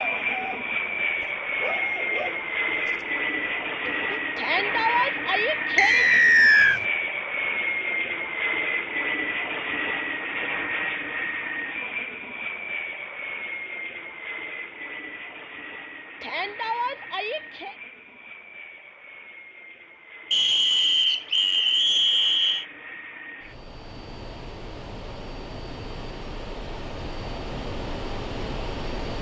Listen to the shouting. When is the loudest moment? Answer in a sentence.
The loudest moment of the shouting is at 5 seconds.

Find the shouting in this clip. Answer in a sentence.
The shouting can be heard from 4.3 to 6.1 s and from 16.2 to 17.8 s.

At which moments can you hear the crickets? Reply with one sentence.
You can't hear the crickets here.